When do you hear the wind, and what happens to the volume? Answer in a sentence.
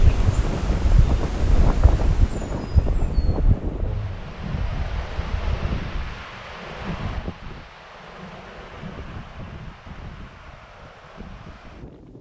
The wind can be heard from 0.0 to 12.1 s, getting quieter.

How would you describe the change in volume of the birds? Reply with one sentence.
The volume of the birds goes down.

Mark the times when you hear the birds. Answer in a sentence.
The birds can be heard from 0.0 to 6.5 s.